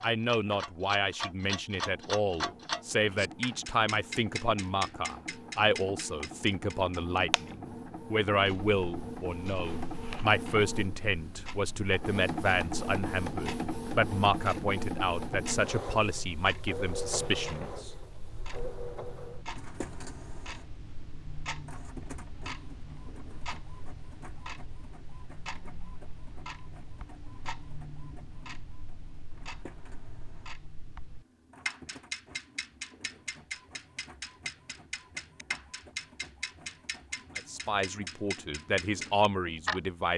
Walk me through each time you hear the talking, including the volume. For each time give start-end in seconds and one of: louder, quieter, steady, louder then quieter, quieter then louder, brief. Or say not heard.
0.0-17.9 steady
37.4-40.1 brief.